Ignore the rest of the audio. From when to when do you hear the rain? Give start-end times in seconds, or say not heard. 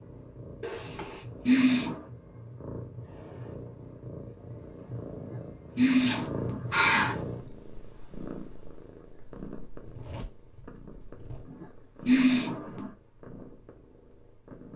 not heard.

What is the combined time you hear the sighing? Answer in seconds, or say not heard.
5 s.